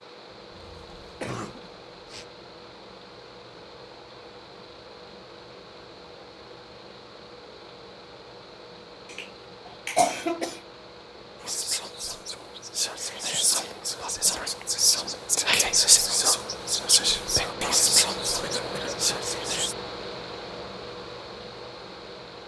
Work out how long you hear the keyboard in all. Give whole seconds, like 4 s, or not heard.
not heard.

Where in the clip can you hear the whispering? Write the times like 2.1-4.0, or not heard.
11.4-19.8.